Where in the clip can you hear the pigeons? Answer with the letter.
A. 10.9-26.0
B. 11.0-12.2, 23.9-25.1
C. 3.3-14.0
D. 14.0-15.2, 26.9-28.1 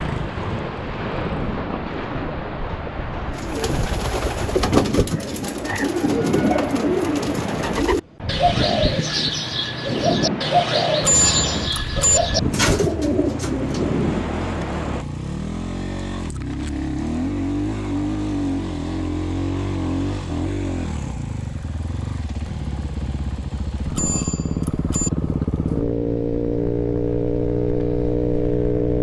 C.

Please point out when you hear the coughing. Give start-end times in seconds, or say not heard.
not heard.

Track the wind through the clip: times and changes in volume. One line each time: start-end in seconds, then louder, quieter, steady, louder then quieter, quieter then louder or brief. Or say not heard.
0.0-15.1 steady.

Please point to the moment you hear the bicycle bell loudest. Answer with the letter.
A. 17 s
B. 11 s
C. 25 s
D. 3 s
B.